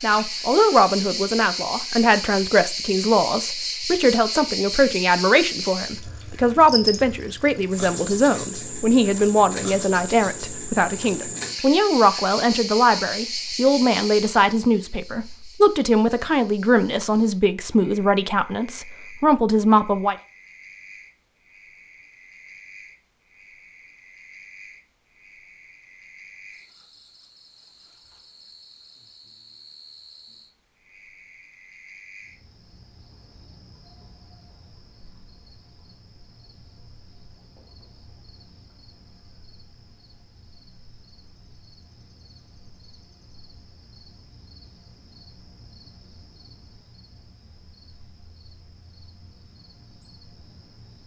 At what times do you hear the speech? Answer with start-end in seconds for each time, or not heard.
0.0-20.1.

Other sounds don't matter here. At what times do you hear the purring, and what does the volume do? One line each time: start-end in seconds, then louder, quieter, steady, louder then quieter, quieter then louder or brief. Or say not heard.
not heard.